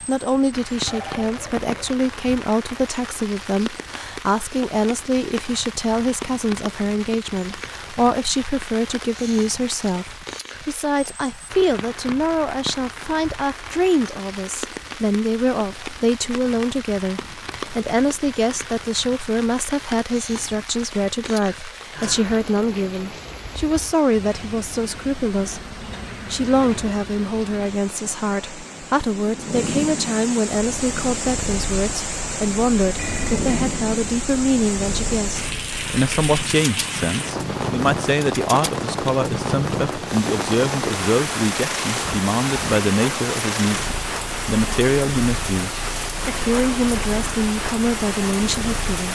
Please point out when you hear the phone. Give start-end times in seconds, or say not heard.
0.8-1.9, 33.0-33.5.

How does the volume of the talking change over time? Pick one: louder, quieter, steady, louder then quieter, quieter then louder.
steady.